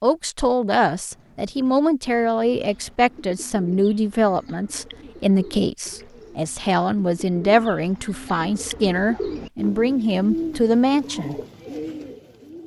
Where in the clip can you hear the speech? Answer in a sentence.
The speech can be heard from 0.0 to 11.3 s.